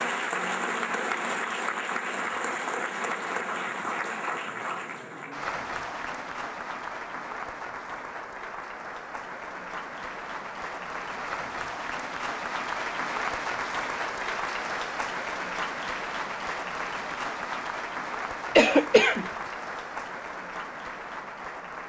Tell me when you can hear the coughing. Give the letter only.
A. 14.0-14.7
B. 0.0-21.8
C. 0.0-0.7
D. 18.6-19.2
D.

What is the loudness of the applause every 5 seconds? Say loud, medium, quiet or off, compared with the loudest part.
loud, medium, loud, loud, medium.